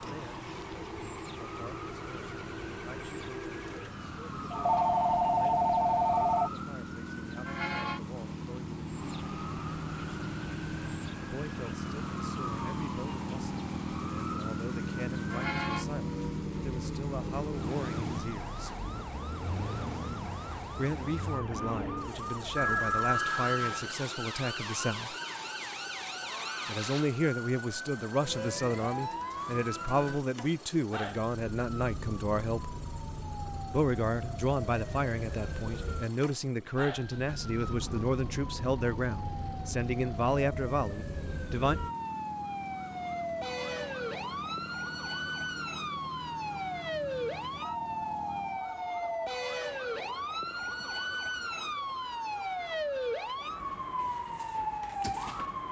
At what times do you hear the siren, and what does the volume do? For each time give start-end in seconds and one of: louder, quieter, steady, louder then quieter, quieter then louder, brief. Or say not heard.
0.0-55.6 louder.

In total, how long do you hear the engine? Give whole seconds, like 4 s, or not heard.
49 s.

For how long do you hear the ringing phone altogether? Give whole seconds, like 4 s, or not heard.
5 s.